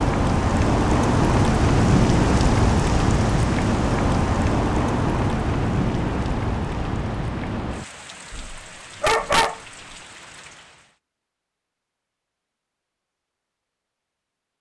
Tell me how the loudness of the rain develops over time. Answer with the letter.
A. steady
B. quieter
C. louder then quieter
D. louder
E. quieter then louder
B.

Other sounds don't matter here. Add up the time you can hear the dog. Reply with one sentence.
You can hear the dog for 2 seconds altogether.